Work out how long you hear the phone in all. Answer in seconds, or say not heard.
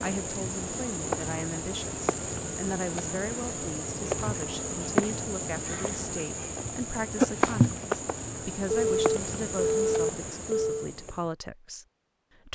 2 s.